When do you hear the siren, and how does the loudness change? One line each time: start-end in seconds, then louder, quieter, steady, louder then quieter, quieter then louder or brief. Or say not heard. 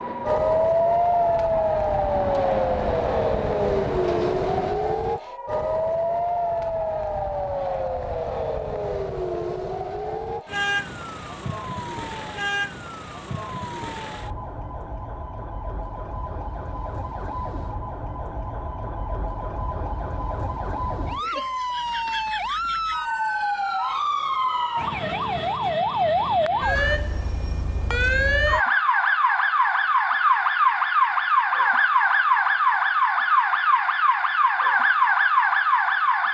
0.0-36.2 quieter then louder.